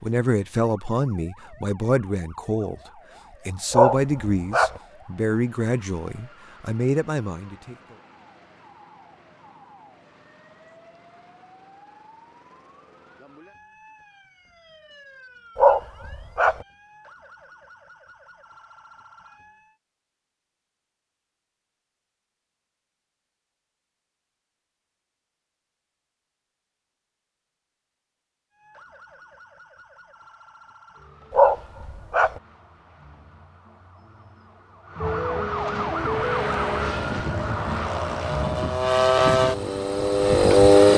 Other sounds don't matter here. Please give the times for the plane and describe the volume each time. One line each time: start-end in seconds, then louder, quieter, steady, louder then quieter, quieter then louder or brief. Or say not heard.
35.9-40.9 louder.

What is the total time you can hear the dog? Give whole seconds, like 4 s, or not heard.
3 s.